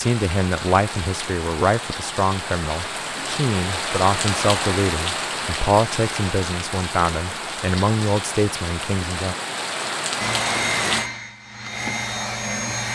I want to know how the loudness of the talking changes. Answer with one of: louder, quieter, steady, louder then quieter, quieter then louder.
steady.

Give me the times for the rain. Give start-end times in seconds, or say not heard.
0.0-11.1.